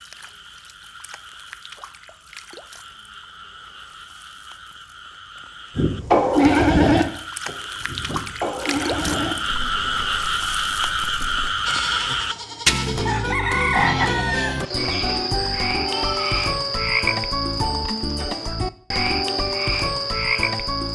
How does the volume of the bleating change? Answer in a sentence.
The loudness of the bleating goes down.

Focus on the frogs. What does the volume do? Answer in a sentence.
The volume of the frogs goes up.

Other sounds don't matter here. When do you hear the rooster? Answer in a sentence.
You can hear the rooster from 13.1 to 14.6 s.